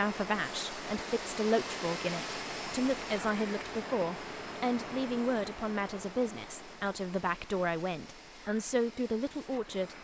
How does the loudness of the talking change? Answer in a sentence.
The loudness of the talking stays about the same.